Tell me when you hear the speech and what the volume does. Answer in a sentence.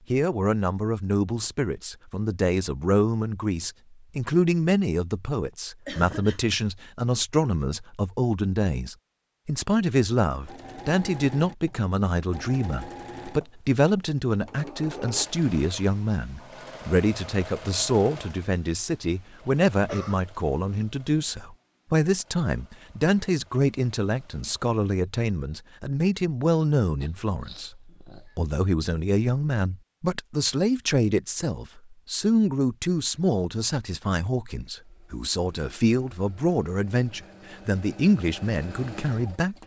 You can hear the speech from 0.1 to 39.6 s, at a steady volume.